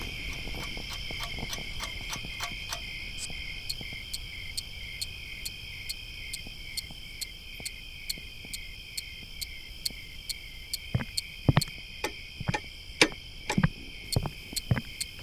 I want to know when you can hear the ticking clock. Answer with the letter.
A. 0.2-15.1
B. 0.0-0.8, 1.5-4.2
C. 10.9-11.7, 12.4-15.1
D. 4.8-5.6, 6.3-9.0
A.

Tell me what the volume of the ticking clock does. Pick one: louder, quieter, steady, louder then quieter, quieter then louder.
louder.